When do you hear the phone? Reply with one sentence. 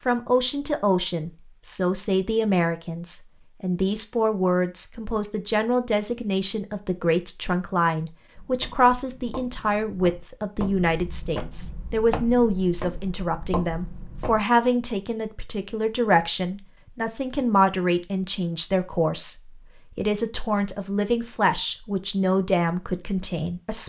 The phone can't be heard in this clip.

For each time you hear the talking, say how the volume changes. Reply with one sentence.
The talking can be heard from 0.1 to 23.8 s, at a steady volume.